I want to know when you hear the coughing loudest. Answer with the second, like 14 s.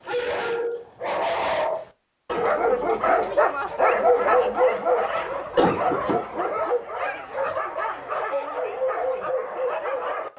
6 s.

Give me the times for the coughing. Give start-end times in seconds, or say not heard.
2.2-2.9, 5.5-6.2.